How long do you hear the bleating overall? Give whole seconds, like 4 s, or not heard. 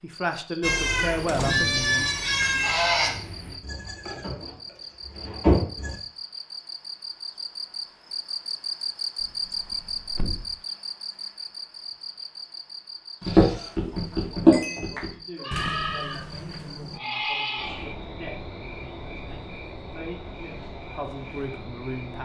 10 s.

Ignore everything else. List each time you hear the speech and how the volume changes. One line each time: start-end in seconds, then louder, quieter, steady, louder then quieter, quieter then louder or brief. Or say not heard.
0.0-2.1 brief
14.1-22.1 louder.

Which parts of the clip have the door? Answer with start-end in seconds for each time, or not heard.
1.2-1.9, 9.2-10.6, 15.5-17.0.